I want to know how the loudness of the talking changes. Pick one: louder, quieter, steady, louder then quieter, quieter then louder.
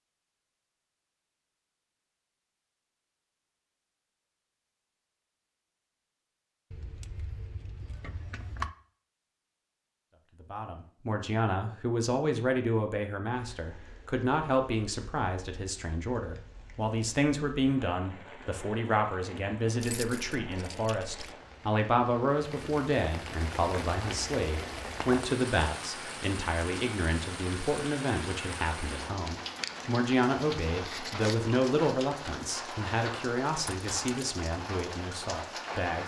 steady.